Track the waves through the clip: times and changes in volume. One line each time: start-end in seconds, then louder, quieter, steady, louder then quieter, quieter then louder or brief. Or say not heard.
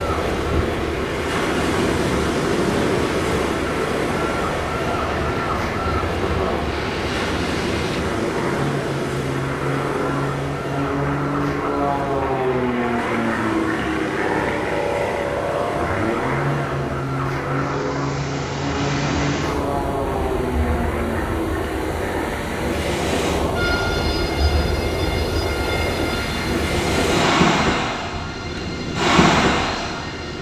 0.0-30.3 quieter then louder.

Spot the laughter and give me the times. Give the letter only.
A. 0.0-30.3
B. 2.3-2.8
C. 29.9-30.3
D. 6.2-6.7
D.